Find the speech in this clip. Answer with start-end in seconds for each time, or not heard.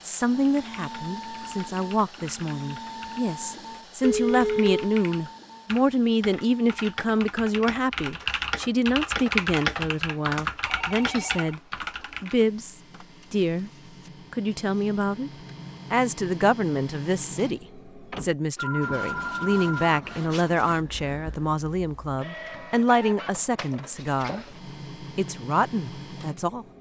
0.0-11.6, 12.2-13.7, 14.3-15.3, 15.9-26.6.